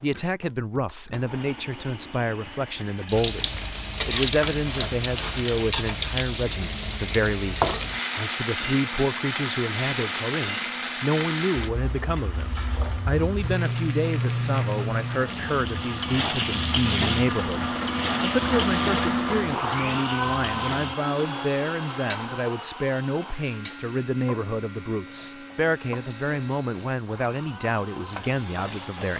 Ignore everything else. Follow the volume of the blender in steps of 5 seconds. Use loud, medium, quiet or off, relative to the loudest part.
quiet, quiet, quiet, loud, medium, quiet.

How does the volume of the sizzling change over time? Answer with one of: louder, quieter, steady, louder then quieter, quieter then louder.
quieter.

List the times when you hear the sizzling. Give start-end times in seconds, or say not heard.
3.0-29.1.